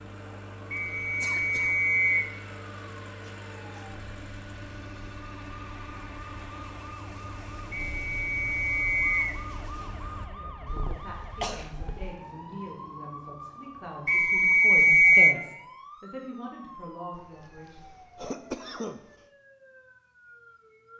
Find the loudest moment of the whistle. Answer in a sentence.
The volume of the whistle peaks at 15 seconds.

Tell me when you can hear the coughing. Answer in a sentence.
The coughing can be heard from 0.8 to 1.8 s, from 10.7 to 12.2 s and from 17.1 to 19.0 s.